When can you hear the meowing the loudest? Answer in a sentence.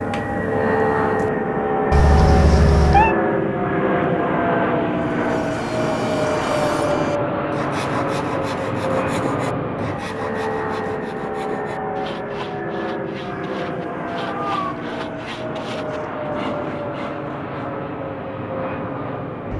The loudest moment of the meowing is at 3 seconds.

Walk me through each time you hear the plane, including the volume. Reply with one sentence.
The plane can be heard from 0.0 to 19.5 s, getting quieter.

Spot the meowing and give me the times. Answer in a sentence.
You can hear the meowing from 1.9 to 3.1 s and from 13.2 to 14.9 s.